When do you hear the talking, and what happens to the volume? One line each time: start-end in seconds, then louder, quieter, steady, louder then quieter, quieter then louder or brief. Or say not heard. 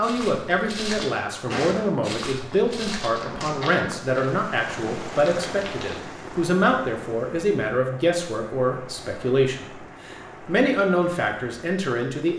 0.0-12.3 steady.